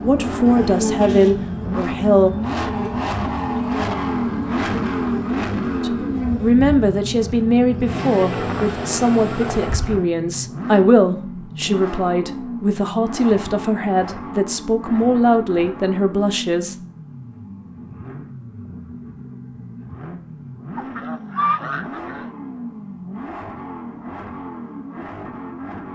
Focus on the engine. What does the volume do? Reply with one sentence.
The volume of the engine goes down.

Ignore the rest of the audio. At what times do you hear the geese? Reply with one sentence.
You can hear the geese from 8.3 to 10.0 s and from 20.8 to 22.2 s.